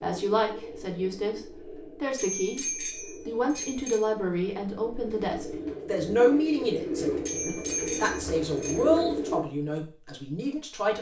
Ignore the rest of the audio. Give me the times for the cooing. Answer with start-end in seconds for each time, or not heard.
0.0-9.4.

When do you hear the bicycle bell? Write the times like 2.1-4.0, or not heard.
2.1-4.0, 7.2-8.8.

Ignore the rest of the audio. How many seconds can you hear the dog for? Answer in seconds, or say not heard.
not heard.